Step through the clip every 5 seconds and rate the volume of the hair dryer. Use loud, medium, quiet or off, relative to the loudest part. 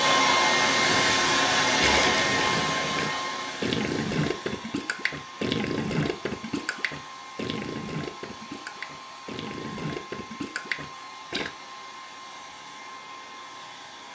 loud, quiet, quiet.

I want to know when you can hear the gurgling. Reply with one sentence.
The gurgling can be heard from 0.8 to 11.5 s.